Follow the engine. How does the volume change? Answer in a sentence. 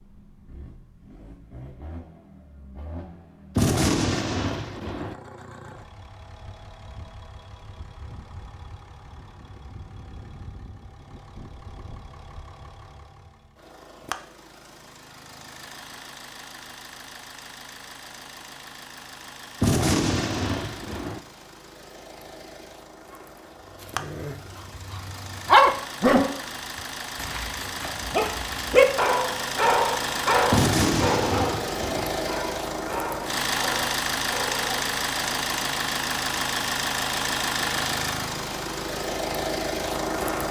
The volume of the engine goes up.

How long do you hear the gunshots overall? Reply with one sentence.
The gunshots can be heard for 5 seconds in total.